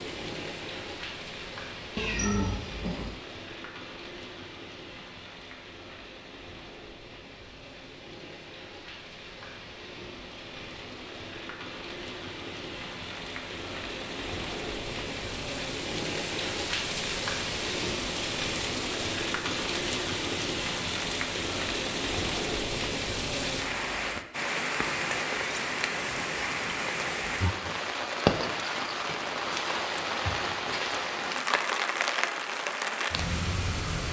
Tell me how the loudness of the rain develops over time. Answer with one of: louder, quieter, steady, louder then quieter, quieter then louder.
louder.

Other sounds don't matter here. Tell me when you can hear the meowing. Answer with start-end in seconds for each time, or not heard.
1.9-3.2.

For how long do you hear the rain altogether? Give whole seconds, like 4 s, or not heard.
34 s.